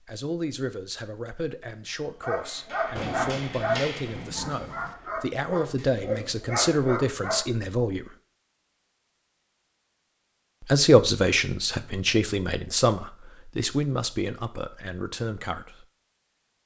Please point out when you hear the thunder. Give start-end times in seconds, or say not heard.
3.0-5.0.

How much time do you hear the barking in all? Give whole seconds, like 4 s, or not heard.
5 s.